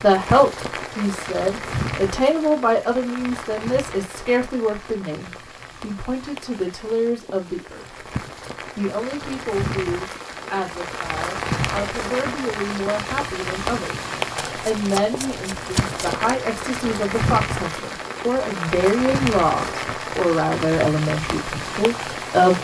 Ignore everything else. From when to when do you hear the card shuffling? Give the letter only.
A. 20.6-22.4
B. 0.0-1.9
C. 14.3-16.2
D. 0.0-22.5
C.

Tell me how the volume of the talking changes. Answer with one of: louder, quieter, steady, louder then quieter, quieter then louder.
quieter then louder.